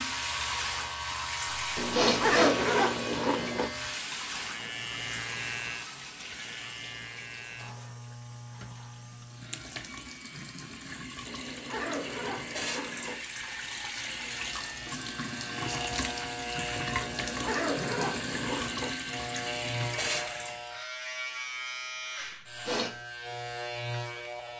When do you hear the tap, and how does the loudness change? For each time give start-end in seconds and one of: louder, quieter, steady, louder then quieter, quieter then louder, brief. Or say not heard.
0.0-20.8 quieter then louder.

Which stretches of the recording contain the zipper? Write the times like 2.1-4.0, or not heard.
1.8-3.7, 11.2-13.2, 17.0-18.9.